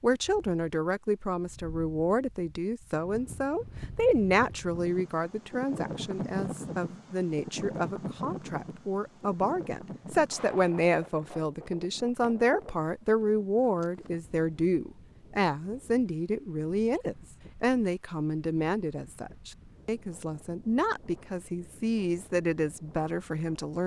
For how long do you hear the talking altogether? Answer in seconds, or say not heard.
24 s.